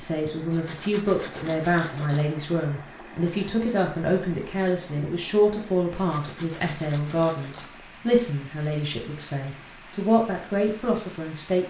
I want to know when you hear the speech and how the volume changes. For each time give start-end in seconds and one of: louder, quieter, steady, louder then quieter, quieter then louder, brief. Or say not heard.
0.0-11.6 steady.